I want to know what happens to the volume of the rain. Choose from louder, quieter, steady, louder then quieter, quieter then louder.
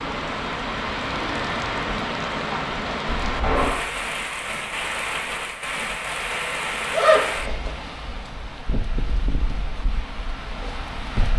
quieter.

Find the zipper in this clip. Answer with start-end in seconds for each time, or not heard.
3.2-3.9, 6.1-7.7.